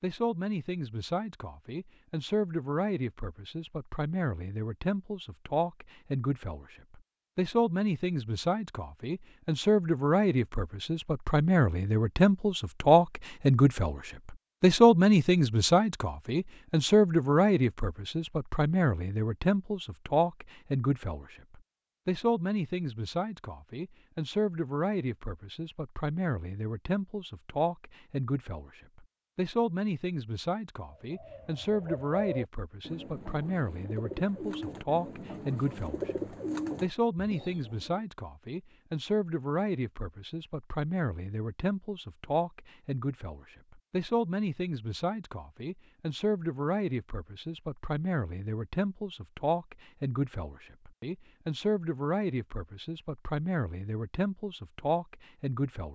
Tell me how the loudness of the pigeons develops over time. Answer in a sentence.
The volume of the pigeons goes down, then up.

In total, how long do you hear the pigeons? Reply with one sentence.
The pigeons can be heard for 7 seconds in total.